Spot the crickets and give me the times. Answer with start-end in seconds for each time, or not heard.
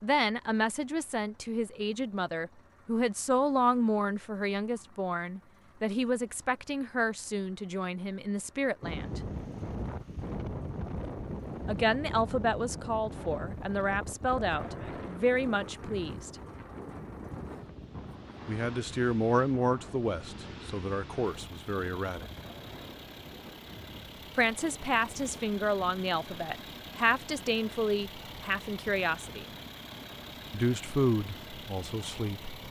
not heard.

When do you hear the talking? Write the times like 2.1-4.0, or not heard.
0.0-9.2, 11.7-16.4, 18.4-22.3, 24.4-29.5, 30.5-32.5.